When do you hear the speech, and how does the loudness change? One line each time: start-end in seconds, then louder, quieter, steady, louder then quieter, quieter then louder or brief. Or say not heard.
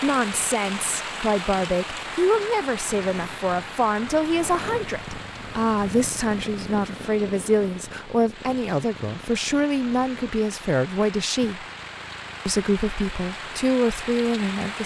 0.0-11.7 steady
12.4-14.8 brief.